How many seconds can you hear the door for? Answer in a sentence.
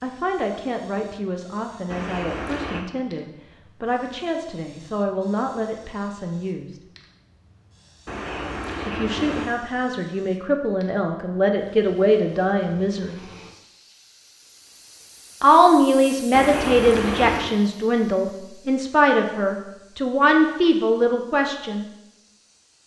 The door can be heard for 4 seconds in total.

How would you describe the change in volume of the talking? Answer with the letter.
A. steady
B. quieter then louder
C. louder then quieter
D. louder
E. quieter
D.